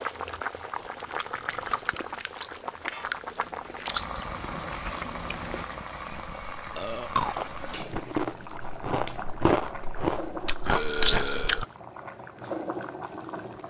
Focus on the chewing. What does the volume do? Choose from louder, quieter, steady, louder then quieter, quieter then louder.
louder.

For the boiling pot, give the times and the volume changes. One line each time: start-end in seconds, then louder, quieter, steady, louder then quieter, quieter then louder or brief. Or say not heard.
0.0-13.6 steady.